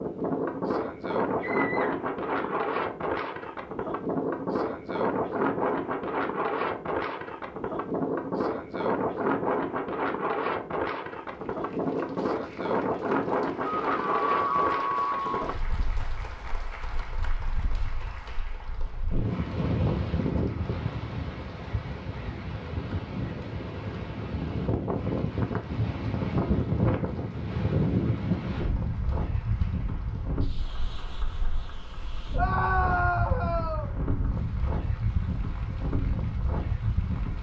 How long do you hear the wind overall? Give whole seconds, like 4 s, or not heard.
37 s.